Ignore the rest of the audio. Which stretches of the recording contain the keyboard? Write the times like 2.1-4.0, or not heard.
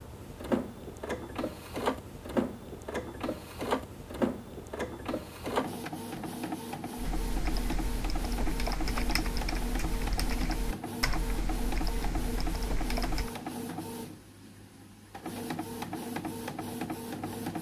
7.0-13.3.